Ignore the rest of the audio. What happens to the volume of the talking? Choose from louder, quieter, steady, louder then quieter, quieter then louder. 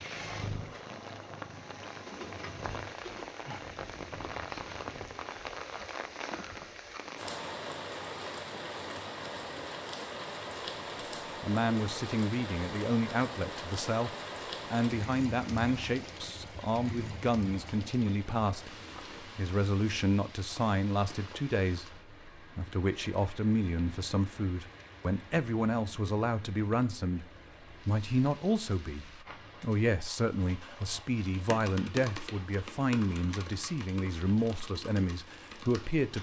steady.